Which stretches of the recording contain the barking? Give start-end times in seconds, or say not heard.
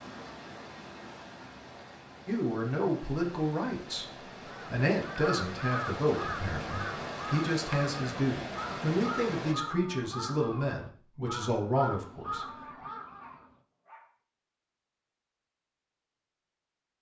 12.4-14.2.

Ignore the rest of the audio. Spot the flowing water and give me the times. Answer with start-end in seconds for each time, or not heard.
0.0-9.6.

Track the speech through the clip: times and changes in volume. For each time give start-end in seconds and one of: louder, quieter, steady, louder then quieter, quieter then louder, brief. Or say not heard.
2.2-12.4 steady.